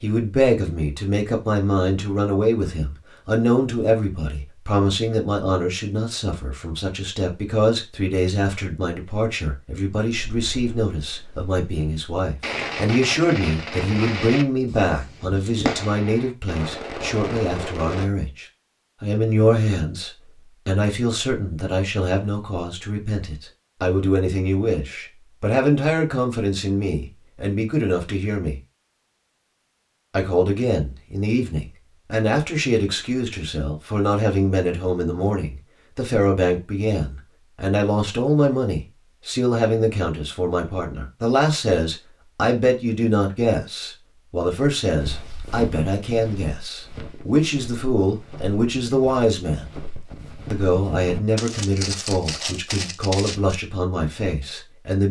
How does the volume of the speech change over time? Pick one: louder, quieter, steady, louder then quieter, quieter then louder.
steady.